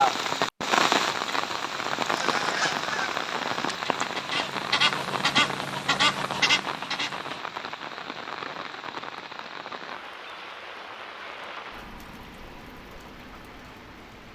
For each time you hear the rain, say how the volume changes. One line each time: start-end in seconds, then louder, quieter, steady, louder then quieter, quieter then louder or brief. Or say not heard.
0.0-14.3 quieter.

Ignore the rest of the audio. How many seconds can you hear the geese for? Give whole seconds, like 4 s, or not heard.
5 s.